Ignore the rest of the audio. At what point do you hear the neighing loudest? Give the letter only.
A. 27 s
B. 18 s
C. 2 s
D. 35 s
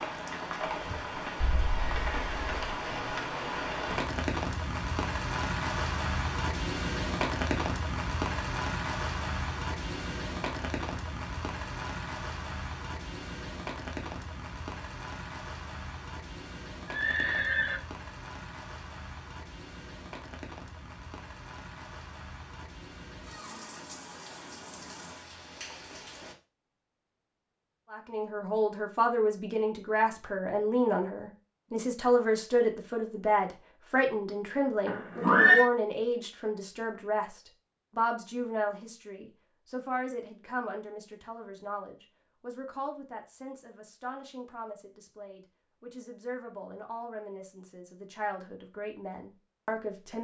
D.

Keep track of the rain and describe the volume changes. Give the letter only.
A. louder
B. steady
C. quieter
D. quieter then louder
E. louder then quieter
C.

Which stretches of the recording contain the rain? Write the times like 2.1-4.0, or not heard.
0.0-26.4.